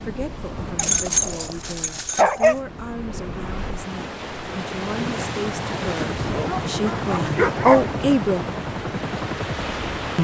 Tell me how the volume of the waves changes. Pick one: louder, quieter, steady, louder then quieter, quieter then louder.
louder.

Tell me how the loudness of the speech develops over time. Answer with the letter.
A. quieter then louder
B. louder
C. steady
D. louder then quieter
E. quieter
B.